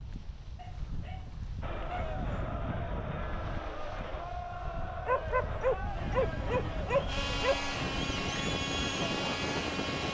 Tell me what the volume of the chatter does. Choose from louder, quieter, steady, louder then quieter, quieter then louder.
steady.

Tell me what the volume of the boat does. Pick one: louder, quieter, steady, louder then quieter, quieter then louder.
louder.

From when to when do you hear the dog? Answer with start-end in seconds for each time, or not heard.
0.6-2.2, 5.0-7.7.